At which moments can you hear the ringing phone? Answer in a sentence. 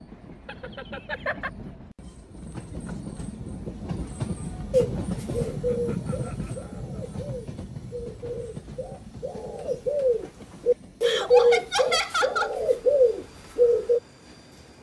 You can't hear the ringing phone here.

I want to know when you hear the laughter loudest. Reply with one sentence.
The volume of the laughter peaks at 12 seconds.